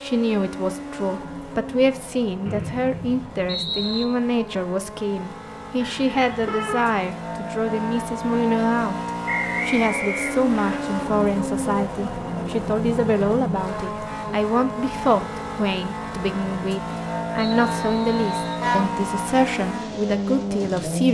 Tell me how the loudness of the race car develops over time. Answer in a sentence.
The loudness of the race car goes up.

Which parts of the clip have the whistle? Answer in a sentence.
The whistle can be heard from 2.5 to 4.0 s, from 9.2 to 10.8 s and from 17.4 to 18.6 s.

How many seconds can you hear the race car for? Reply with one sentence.
You can hear the race car for 21 seconds altogether.